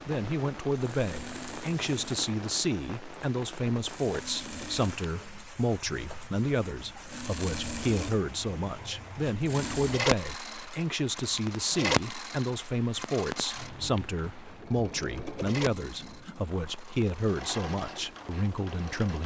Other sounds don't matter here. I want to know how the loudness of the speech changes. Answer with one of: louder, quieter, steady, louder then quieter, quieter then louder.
steady.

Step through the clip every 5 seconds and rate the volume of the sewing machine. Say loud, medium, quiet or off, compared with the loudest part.
medium, medium, loud, medium.